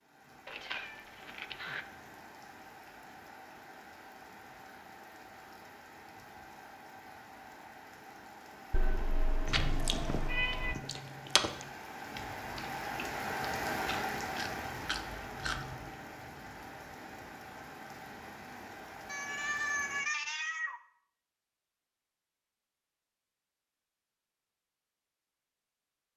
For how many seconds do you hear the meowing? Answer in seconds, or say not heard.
5 s.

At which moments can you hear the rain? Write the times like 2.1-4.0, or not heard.
0.0-20.1.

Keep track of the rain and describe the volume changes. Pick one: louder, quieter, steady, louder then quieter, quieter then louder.
louder then quieter.